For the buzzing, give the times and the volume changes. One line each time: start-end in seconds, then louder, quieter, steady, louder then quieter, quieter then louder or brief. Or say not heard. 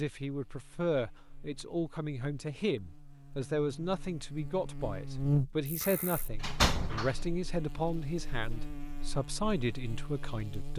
0.2-10.7 louder then quieter.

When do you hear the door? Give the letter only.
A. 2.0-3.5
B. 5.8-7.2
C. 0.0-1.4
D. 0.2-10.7
B.